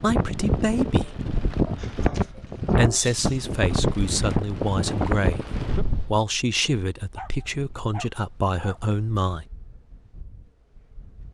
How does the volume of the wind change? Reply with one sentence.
The volume of the wind goes down.